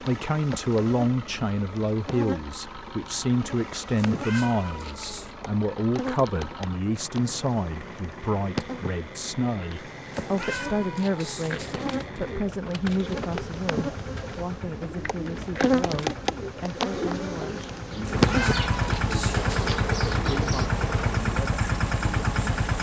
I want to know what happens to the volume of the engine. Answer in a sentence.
The loudness of the engine goes up.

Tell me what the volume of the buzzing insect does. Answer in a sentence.
The volume of the buzzing insect goes up.